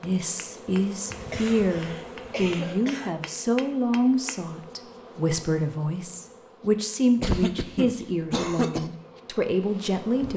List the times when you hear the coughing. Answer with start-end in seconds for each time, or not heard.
1.3-3.1, 7.2-8.9.